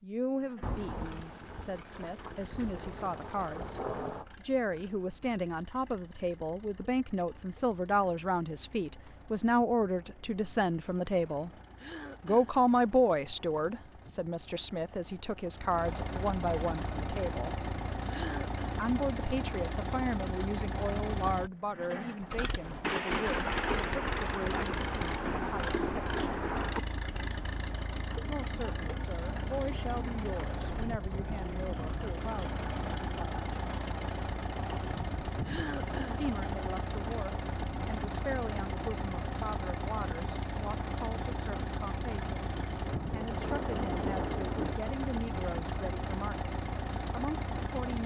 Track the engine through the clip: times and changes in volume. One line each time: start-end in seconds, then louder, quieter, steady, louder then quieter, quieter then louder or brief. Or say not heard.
0.1-48.0 louder.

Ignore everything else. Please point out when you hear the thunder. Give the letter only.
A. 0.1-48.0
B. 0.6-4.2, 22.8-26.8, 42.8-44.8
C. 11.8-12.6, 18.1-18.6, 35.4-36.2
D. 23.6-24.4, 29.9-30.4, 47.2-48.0
B.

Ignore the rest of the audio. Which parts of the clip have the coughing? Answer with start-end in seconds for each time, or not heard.
11.8-12.6, 18.1-18.6, 35.4-36.2.